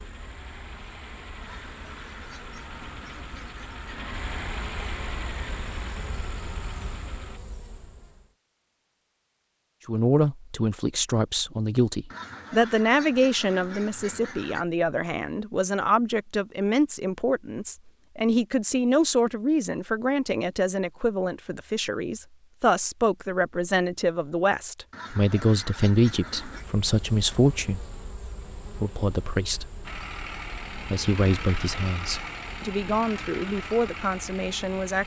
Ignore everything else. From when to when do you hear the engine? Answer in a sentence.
You can hear the engine from 0.0 to 7.4 s and from 29.8 to 35.0 s.